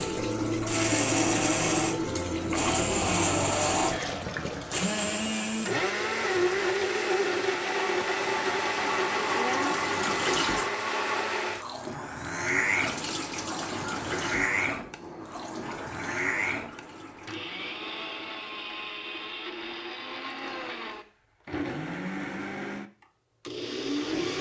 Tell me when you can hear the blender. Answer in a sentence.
The blender can be heard from 0.0 to 24.3 s.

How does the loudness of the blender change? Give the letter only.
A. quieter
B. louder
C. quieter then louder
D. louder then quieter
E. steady
A.